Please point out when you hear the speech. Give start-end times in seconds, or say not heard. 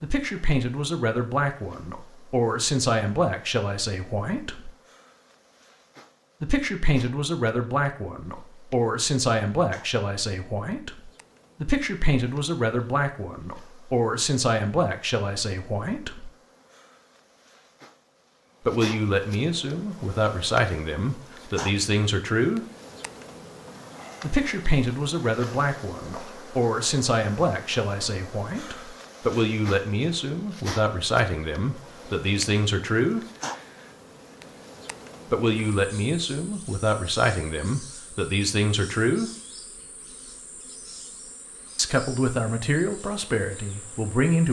0.0-4.7, 6.4-16.3, 18.6-22.6, 24.2-33.2, 35.3-39.3, 41.8-44.4.